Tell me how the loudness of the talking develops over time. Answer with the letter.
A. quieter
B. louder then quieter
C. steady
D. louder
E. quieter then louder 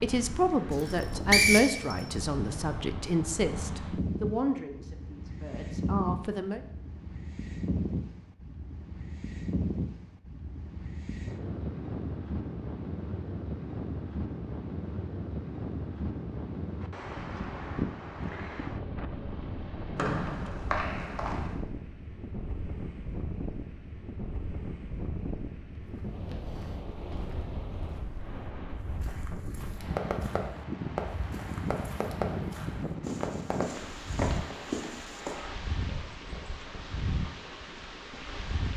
A.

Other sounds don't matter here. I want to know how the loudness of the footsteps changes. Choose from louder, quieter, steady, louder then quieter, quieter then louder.
louder.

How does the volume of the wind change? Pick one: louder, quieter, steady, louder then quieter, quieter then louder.
steady.